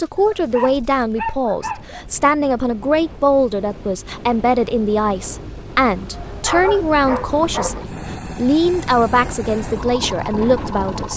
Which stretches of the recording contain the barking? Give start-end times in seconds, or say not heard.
0.1-2.0, 6.0-7.8.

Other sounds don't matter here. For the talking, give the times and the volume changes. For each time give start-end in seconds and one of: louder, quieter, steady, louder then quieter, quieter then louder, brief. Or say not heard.
0.0-11.1 steady.